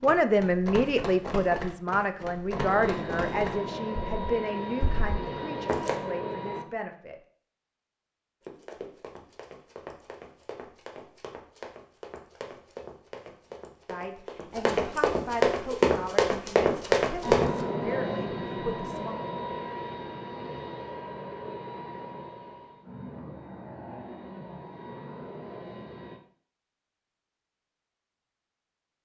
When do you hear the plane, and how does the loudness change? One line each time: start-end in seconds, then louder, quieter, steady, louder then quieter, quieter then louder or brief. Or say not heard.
2.5-6.7 steady
17.2-26.2 quieter.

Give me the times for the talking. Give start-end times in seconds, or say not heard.
0.0-7.2, 13.8-19.1.